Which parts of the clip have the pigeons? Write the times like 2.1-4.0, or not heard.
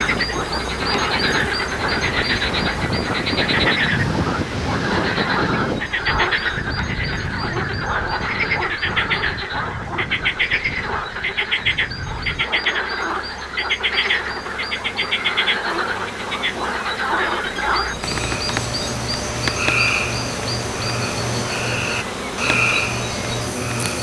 not heard.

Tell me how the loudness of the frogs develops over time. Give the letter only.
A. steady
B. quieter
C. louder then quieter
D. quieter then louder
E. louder
A.